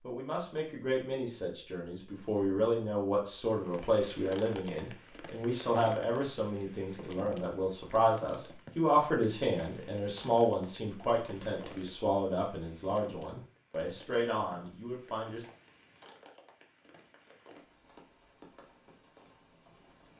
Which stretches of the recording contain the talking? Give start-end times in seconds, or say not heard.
0.0-15.4.